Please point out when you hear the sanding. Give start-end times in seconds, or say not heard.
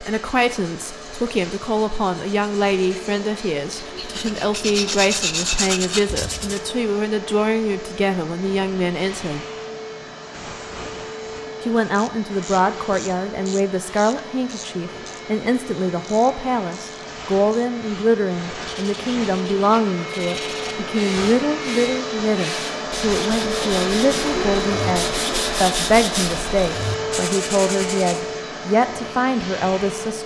0.0-6.6, 18.6-28.2.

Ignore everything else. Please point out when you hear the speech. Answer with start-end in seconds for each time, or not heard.
0.0-9.4, 11.6-30.2.